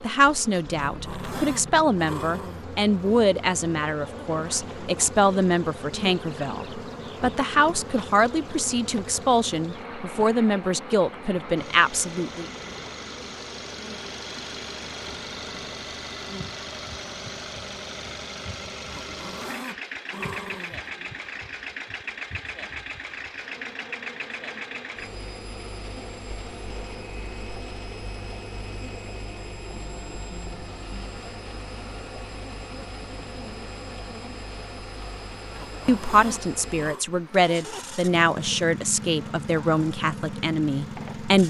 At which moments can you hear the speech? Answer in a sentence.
The speech can be heard from 0.0 to 12.5 s and from 35.9 to 41.4 s.